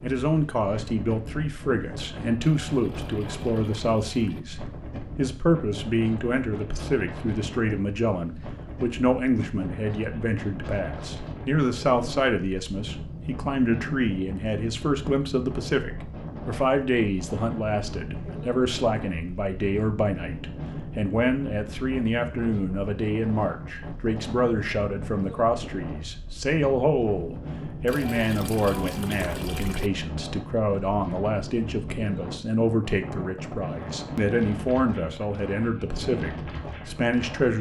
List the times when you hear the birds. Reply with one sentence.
You can't hear the birds here.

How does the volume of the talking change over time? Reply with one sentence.
The loudness of the talking stays about the same.